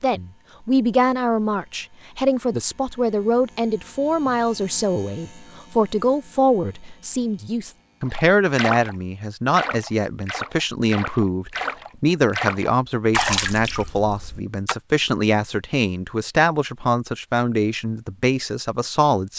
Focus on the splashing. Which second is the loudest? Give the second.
13 s.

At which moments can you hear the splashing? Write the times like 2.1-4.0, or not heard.
8.1-14.8.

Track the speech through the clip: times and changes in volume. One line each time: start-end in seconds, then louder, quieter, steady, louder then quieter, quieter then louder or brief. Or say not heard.
0.0-19.3 steady.